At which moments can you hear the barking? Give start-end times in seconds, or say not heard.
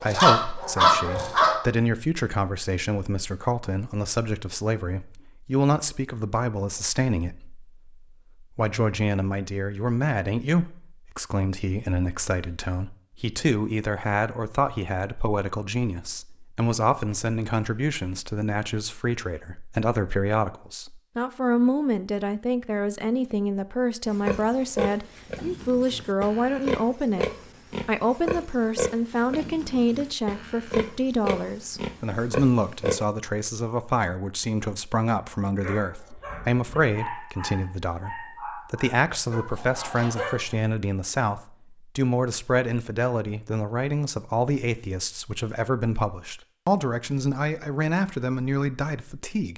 0.0-1.6, 35.5-40.4.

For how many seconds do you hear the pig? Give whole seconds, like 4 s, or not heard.
9 s.